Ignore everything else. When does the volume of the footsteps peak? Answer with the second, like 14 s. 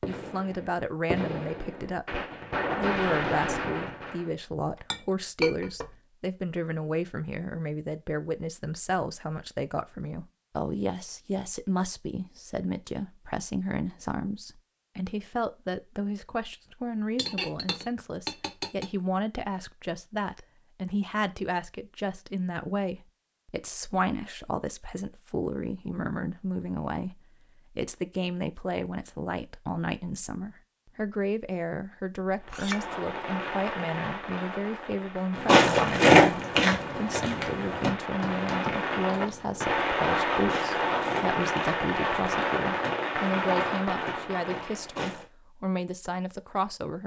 36 s.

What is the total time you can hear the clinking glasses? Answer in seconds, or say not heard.
4 s.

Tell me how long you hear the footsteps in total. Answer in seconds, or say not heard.
10 s.